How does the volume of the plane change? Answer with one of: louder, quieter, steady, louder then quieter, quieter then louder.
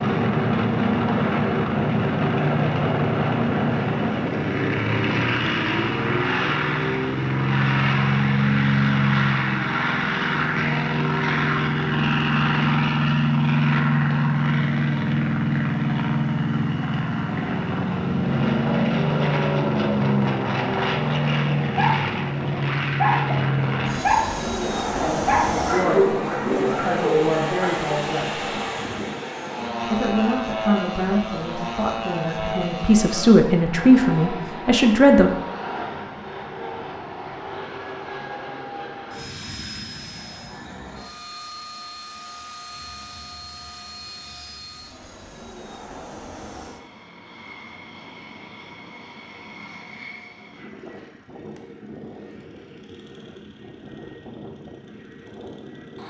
quieter.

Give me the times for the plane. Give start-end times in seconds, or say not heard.
0.0-56.0.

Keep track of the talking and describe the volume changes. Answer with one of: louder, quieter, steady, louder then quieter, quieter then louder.
louder.